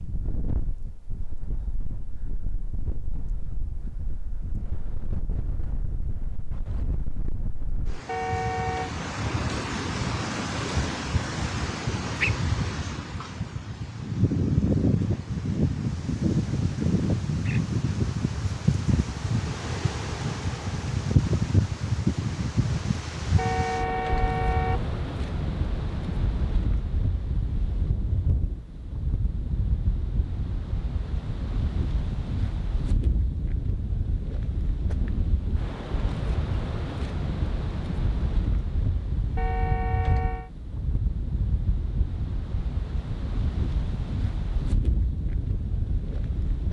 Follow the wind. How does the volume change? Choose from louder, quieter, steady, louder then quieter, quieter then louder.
louder then quieter.